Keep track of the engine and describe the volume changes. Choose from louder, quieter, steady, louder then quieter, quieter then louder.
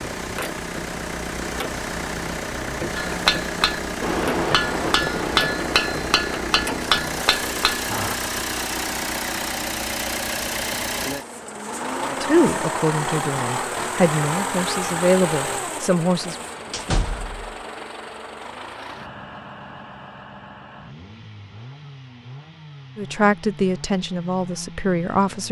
quieter.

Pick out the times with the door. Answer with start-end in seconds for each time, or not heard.
16.7-17.6.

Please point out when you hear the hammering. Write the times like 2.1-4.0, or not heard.
3.0-8.2.